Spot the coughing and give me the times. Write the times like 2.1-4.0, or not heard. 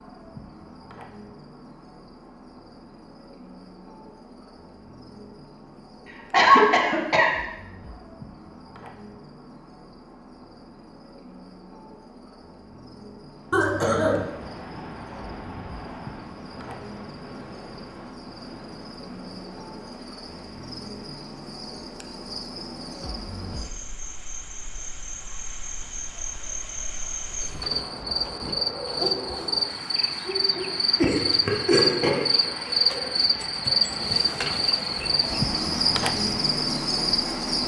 6.3-7.3, 13.5-14.2, 30.9-32.5.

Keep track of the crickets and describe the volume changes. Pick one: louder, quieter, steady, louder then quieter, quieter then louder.
louder.